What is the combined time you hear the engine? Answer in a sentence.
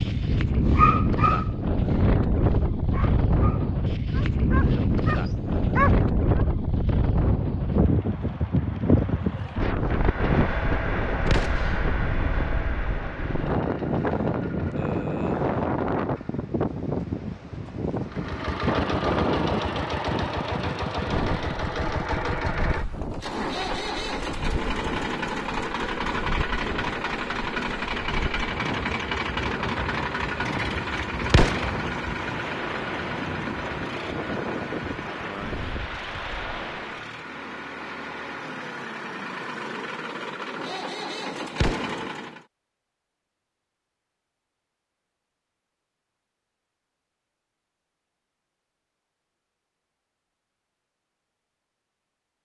You can hear the engine for 31 seconds altogether.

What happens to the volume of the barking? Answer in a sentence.
The loudness of the barking goes down, then up.